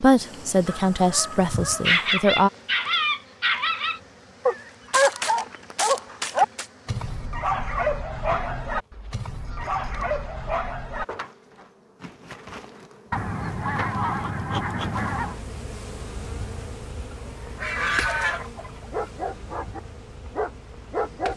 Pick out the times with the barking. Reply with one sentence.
You can hear the barking from 1.9 to 11.2 s and from 18.9 to 21.3 s.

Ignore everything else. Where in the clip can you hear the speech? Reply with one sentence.
You can hear the speech from 0.0 to 2.5 s.